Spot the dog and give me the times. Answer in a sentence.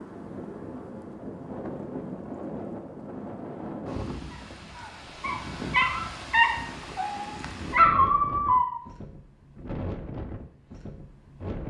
The dog can be heard from 4.3 to 8.8 s.